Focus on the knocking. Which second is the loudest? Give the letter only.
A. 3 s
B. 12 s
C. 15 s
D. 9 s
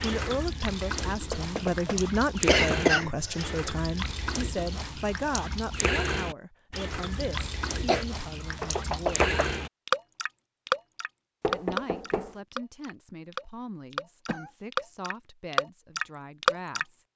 D.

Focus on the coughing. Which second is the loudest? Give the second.
3 s.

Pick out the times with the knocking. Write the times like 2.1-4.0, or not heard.
1.3-2.0, 8.6-9.5, 11.4-12.3.